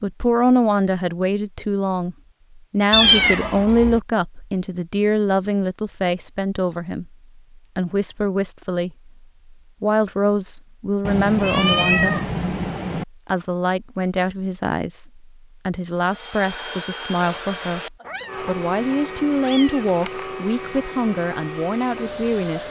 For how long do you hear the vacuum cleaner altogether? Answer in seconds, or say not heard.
7 s.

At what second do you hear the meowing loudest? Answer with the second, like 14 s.
3 s.